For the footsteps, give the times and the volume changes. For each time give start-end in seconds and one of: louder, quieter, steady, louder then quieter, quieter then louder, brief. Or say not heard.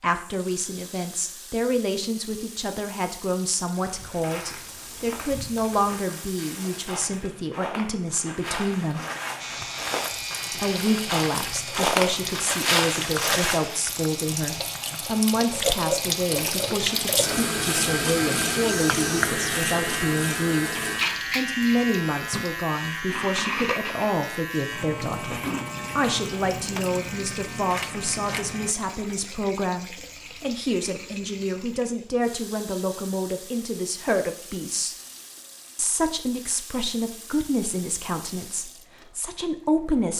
3.5-13.8 louder.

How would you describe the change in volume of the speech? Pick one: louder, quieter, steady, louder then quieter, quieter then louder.
steady.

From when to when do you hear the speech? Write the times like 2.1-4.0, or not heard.
0.0-9.0, 10.5-20.8, 21.4-35.0, 35.8-40.1.